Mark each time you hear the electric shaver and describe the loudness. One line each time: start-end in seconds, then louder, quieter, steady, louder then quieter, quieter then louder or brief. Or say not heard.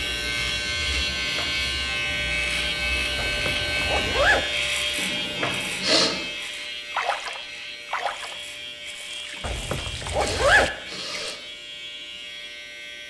0.0-13.0 quieter.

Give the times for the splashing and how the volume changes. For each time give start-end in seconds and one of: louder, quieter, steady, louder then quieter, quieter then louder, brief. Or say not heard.
6.9-11.3 quieter then louder.